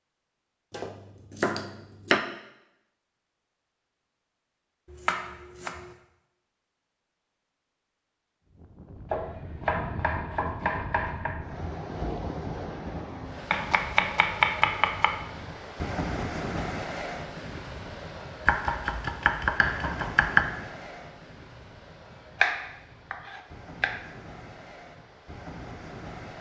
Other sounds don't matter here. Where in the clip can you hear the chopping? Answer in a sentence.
The chopping can be heard from 0.7 to 2.2 s, from 4.9 to 5.9 s, from 9.1 to 11.3 s, from 13.5 to 15.2 s, from 18.4 to 20.4 s and from 22.4 to 24.0 s.